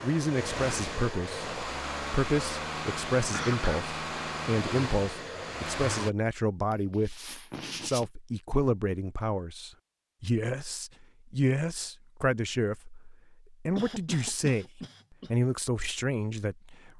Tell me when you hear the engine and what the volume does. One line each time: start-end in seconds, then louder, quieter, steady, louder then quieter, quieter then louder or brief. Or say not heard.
0.0-6.1 steady.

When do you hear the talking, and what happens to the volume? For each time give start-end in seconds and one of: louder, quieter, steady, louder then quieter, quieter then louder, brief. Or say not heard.
0.0-16.9 steady.